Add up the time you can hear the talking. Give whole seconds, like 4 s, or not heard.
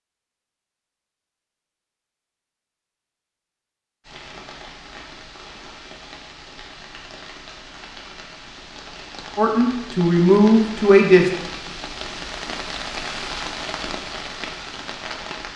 2 s.